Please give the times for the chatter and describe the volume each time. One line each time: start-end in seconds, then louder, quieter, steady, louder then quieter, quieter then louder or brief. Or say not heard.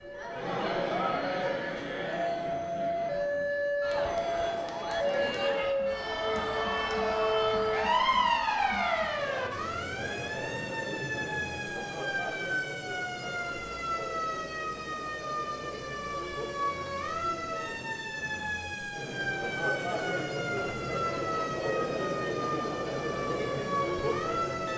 0.0-24.7 quieter then louder.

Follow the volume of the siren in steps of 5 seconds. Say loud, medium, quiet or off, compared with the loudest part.
loud, loud, medium, medium, medium.